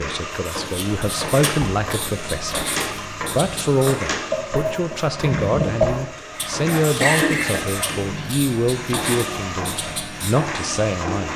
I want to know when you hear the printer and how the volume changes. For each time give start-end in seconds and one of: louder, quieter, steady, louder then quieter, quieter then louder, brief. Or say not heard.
0.0-11.3 steady.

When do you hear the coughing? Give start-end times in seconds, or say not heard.
6.3-7.8.